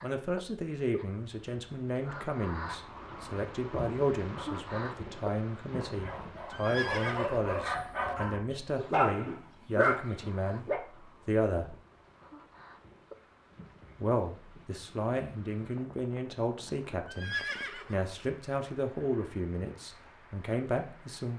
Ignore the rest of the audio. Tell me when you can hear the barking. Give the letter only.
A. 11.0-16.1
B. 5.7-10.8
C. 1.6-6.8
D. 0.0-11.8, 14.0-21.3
B.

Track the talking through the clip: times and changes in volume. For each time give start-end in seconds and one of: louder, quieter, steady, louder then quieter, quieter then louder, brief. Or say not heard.
0.0-11.8 steady
14.0-21.3 steady.